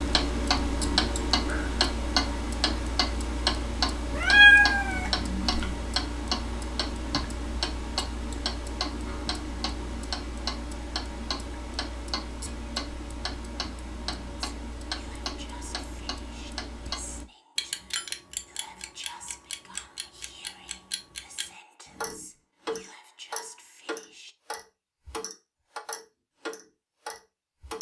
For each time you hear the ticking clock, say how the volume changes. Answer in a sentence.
The ticking clock can be heard from 0.0 to 27.7 s, getting quieter.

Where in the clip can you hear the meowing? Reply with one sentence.
The meowing can be heard from 4.2 to 5.8 s.